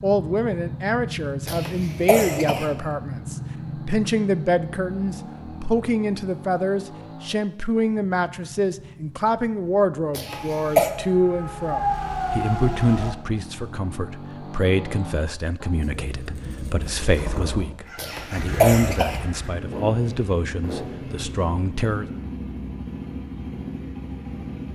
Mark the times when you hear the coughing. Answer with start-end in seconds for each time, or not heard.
1.4-2.7, 10.2-10.9, 17.9-19.2.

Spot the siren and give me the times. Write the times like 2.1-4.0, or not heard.
10.2-13.2.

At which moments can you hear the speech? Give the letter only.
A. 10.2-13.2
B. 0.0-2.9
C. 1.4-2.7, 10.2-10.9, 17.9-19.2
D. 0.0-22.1
D.